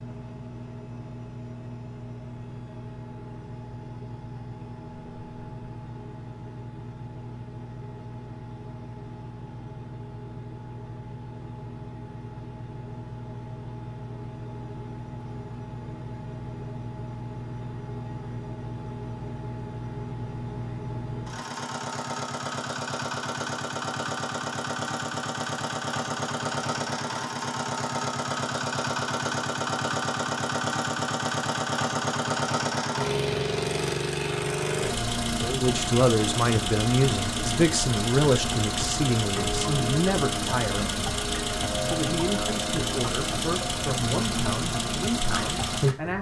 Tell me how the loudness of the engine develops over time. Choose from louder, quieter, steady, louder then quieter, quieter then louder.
louder.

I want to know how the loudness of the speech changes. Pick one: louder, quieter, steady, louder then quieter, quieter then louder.
quieter.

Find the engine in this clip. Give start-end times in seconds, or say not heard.
0.0-46.1.